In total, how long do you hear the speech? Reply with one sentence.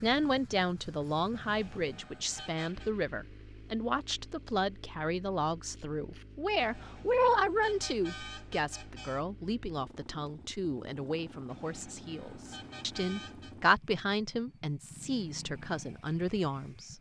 You can hear the speech for 17 seconds altogether.